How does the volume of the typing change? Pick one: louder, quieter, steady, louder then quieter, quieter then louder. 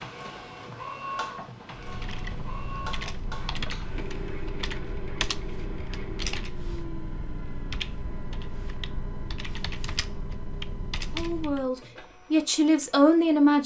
steady.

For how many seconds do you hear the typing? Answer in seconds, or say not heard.
10 s.